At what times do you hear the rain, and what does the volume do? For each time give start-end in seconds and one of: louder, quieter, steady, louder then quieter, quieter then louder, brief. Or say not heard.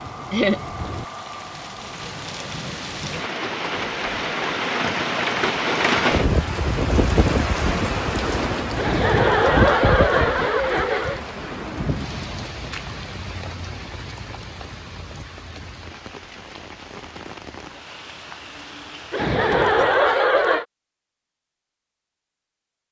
0.0-19.4 louder then quieter.